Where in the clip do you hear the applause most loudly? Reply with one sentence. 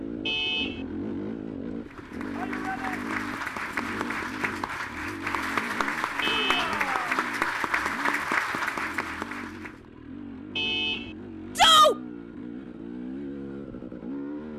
The loudest moment of the applause is at 8 seconds.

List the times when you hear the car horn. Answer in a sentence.
You can hear the car horn from 0.2 to 0.8 s, from 6.2 to 6.8 s and from 10.6 to 11.2 s.